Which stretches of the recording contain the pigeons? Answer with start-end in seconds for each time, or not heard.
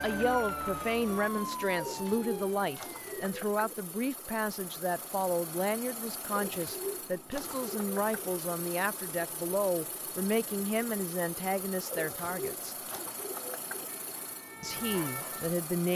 1.8-3.8, 6.3-8.2, 11.8-13.9.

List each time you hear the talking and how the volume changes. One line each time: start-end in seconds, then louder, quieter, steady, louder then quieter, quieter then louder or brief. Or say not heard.
0.0-12.8 steady
14.6-15.9 brief.